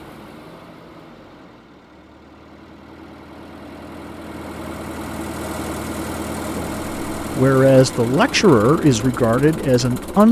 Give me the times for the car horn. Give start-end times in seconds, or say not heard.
not heard.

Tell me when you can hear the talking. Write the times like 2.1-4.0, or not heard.
6.5-10.2.